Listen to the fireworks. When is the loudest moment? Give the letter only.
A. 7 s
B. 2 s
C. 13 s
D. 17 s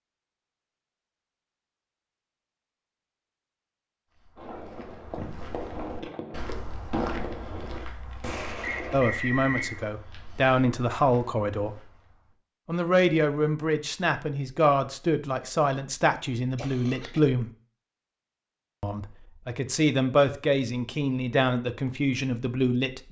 A.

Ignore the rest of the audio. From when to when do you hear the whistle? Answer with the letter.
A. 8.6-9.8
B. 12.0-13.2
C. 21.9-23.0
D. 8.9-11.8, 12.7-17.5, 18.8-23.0
A.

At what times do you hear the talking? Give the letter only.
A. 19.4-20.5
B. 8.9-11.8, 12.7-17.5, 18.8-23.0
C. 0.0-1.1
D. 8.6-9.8
B.